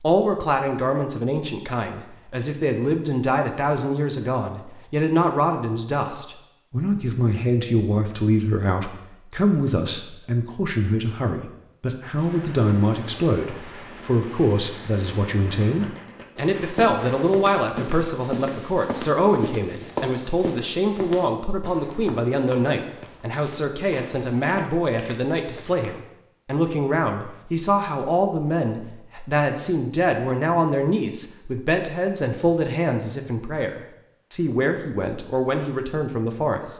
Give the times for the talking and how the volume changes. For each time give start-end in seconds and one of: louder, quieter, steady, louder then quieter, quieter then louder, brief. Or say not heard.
0.0-36.7 steady.